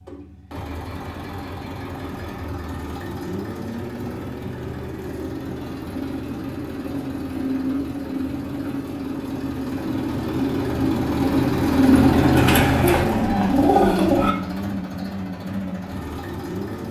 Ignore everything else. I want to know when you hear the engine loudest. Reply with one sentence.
The loudest moment of the engine is at 12 seconds.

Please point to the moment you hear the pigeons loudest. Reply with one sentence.
The volume of the pigeons peaks at 14 seconds.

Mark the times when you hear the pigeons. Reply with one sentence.
The pigeons can be heard from 12.3 to 14.3 s.